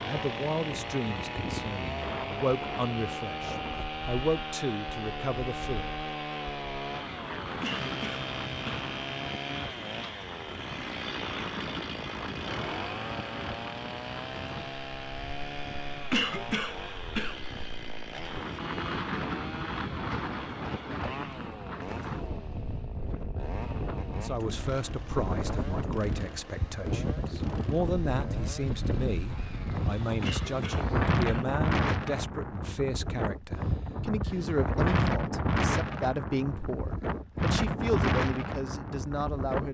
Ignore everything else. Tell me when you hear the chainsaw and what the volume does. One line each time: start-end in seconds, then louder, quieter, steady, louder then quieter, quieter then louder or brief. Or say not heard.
0.0-31.1 quieter.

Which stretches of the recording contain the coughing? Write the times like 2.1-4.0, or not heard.
7.6-8.8, 16.1-17.4, 30.2-31.4.